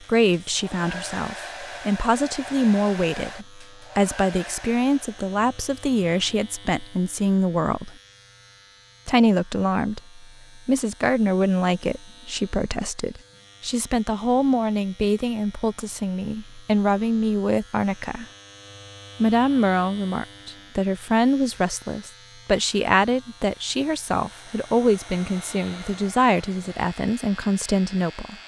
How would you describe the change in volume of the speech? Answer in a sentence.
The loudness of the speech stays about the same.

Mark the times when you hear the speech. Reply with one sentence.
You can hear the speech from 0.1 to 8.0 s, from 9.1 to 18.2 s and from 19.2 to 28.4 s.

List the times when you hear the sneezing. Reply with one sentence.
The sneezing can't be heard in this clip.